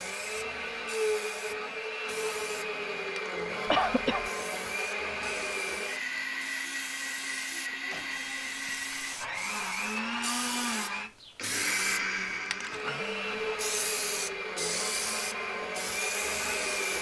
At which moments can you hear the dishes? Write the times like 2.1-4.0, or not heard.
not heard.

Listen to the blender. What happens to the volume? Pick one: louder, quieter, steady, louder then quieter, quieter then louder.
steady.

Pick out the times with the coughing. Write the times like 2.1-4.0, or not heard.
3.6-4.3.